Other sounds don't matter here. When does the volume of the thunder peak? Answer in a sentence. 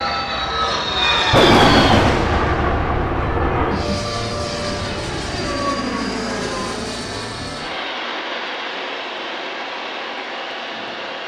The loudest moment of the thunder is at 2 seconds.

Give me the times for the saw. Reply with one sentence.
The saw can't be heard in this clip.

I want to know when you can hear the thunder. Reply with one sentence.
The thunder can be heard from 1.1 to 4.9 s.